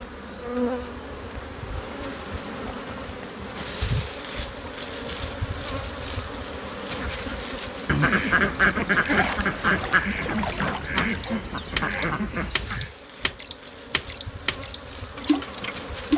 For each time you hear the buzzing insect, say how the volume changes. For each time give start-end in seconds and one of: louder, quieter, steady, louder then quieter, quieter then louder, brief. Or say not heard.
0.0-16.1 quieter.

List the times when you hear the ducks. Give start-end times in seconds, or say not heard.
6.8-12.9.